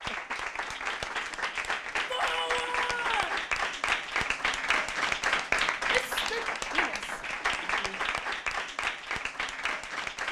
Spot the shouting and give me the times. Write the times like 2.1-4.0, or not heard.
2.1-3.5, 5.8-8.0.